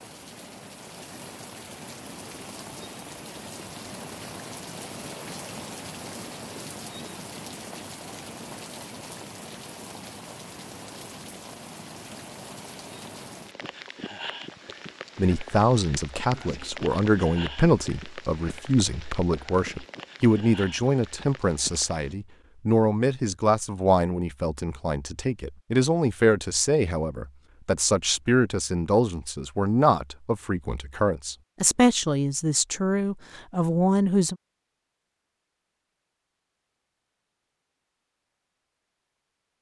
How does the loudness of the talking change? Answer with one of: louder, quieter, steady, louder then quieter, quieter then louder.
steady.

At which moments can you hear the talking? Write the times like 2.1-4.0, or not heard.
15.2-34.4.